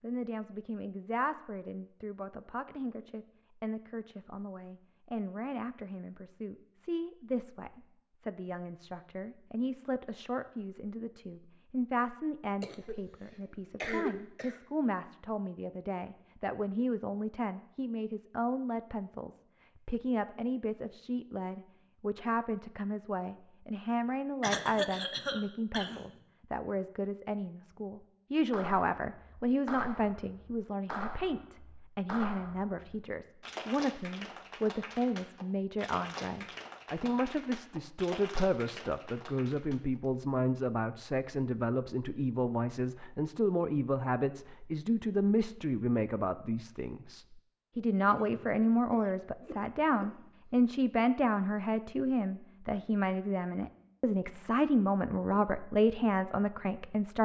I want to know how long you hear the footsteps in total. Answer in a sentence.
You can't hear the footsteps here.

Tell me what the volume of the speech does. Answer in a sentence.
The loudness of the speech goes up.